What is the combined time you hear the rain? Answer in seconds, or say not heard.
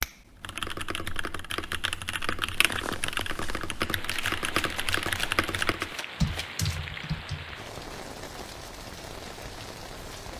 8 s.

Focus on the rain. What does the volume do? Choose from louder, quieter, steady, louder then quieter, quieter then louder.
steady.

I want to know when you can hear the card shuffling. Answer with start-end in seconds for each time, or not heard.
4.1-6.7.